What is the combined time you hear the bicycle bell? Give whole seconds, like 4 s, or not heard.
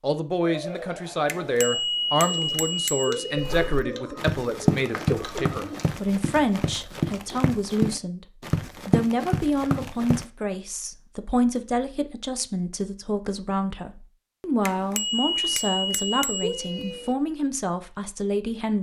5 s.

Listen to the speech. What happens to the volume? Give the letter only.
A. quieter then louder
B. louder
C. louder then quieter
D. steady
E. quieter
D.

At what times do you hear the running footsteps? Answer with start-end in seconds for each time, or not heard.
3.4-10.2.